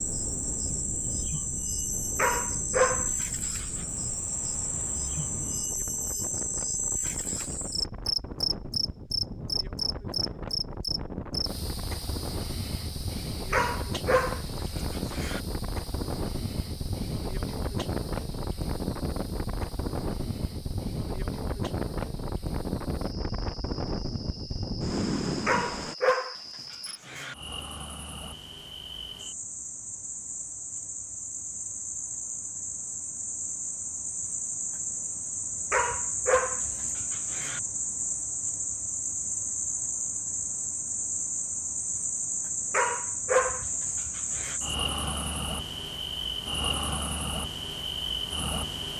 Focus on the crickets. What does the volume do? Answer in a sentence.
The loudness of the crickets goes down, then up.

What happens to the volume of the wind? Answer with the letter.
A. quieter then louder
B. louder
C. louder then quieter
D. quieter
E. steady
B.